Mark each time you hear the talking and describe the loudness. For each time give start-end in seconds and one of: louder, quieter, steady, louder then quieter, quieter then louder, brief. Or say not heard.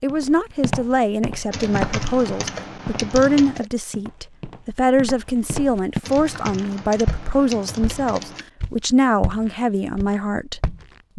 0.0-11.1 steady.